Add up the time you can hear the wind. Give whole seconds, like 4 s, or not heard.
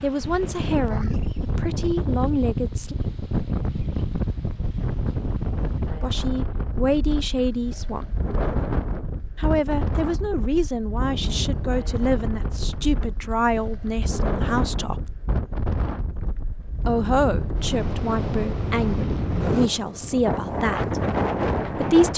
22 s.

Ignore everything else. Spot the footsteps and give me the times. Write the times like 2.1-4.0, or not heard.
not heard.